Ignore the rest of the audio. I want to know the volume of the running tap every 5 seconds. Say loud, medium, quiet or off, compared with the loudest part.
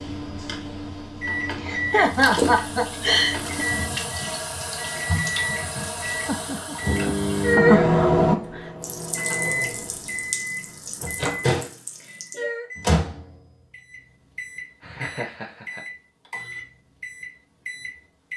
loud, loud, medium, off.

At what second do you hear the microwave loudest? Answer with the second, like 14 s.
8 s.